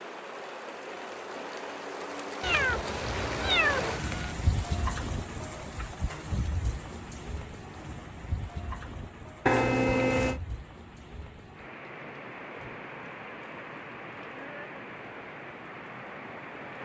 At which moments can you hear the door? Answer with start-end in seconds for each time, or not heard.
not heard.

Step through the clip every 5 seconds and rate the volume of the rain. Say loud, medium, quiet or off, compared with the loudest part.
loud, medium, medium, medium.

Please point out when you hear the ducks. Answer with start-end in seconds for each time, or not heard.
not heard.